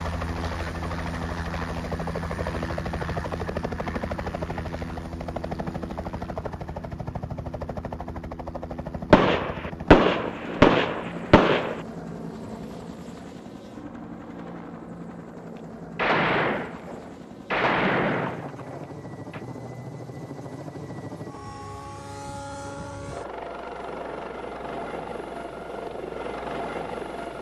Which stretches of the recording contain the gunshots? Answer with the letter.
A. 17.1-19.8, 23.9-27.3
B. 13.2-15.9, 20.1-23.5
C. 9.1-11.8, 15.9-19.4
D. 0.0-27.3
C.